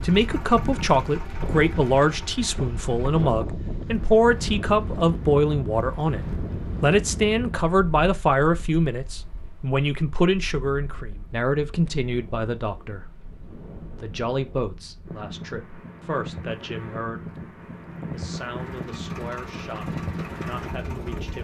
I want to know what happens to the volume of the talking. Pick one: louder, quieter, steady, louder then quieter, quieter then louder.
quieter.